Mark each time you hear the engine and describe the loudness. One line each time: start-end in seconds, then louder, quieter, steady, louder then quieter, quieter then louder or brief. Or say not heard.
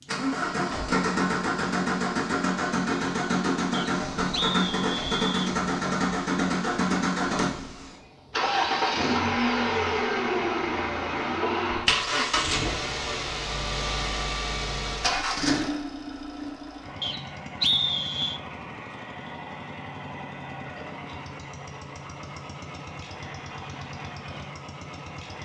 0.0-25.4 quieter.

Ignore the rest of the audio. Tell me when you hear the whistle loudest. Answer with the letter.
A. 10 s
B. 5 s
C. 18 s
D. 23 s
C.